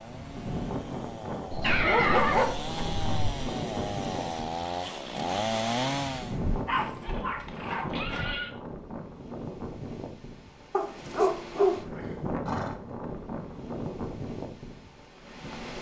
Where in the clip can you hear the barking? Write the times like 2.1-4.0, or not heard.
1.5-3.5, 6.5-8.3, 10.7-11.8.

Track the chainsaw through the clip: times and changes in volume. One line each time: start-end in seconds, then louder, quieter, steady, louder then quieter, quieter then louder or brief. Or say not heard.
0.0-6.4 louder.